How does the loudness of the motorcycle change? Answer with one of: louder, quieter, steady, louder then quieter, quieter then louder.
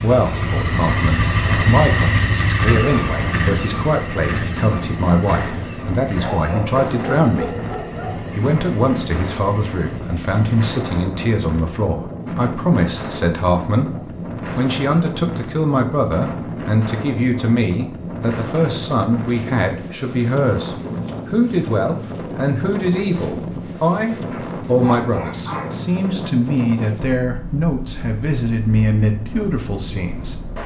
quieter.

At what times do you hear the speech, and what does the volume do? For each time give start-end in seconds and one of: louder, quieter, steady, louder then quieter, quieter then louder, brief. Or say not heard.
0.0-13.9 steady
14.6-30.6 steady.